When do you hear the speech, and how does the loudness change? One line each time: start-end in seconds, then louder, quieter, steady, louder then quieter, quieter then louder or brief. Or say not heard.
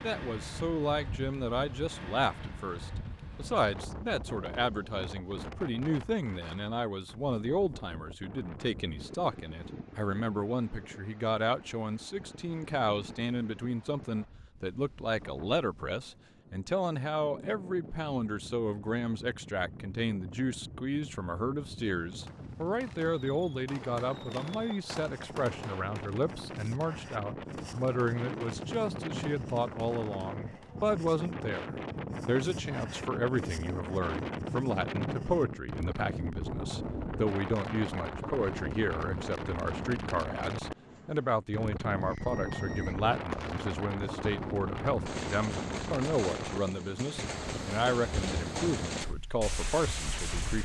0.0-50.6 steady.